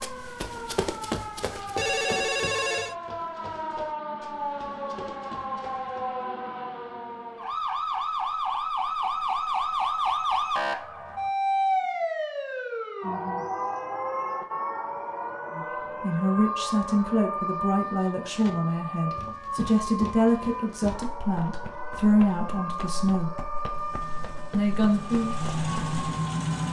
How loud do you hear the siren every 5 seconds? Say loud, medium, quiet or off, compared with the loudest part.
medium, loud, loud, medium, medium, medium.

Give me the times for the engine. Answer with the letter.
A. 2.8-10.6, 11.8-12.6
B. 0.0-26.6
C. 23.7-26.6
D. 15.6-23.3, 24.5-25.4
C.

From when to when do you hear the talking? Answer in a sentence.
The talking can be heard from 15.6 to 23.3 s and from 24.5 to 25.4 s.